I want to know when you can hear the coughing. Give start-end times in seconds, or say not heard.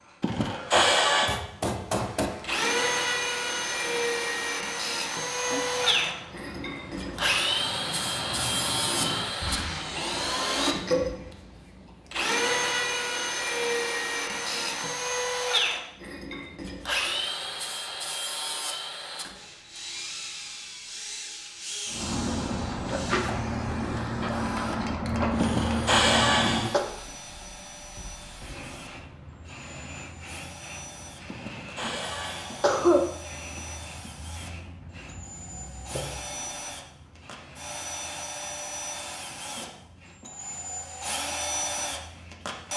0.2-1.4, 25.4-26.8, 31.3-33.0.